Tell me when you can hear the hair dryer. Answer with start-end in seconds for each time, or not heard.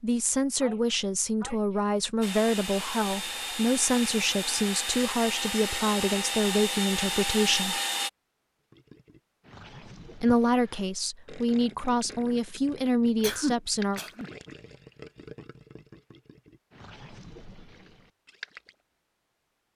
2.2-8.1.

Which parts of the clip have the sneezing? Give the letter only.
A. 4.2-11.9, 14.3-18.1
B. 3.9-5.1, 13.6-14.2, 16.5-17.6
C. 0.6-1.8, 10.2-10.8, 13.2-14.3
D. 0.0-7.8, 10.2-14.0
C.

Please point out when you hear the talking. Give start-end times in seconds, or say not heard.
0.0-7.8, 10.2-14.0.